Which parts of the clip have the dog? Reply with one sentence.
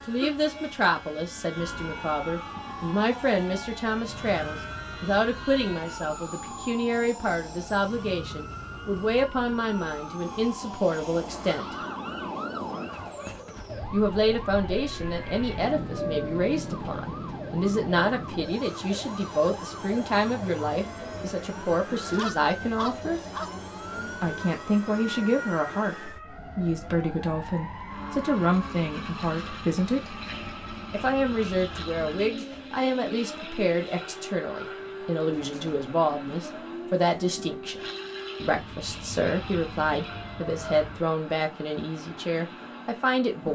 You can hear the dog from 22.0 to 23.6 s.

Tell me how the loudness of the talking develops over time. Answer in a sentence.
The loudness of the talking stays about the same.